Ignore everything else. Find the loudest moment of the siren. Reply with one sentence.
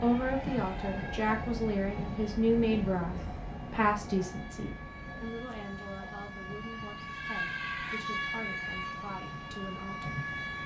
The loudest moment of the siren is at 8 seconds.